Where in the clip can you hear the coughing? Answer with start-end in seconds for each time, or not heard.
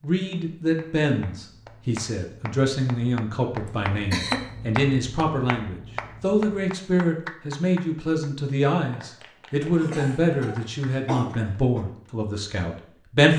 3.6-4.5, 9.6-11.8.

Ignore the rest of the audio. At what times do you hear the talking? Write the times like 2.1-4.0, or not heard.
0.0-13.3.